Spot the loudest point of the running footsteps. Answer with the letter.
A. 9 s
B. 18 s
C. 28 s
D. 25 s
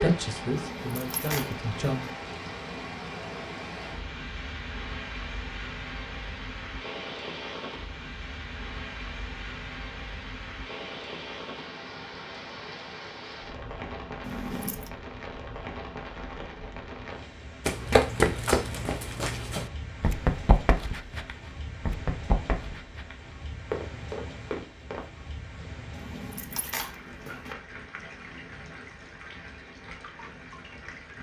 B.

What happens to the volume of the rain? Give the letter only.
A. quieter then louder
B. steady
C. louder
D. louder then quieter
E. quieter
E.